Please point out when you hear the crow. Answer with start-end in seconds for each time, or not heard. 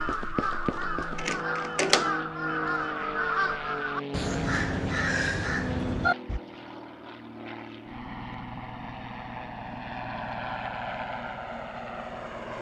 0.0-6.4.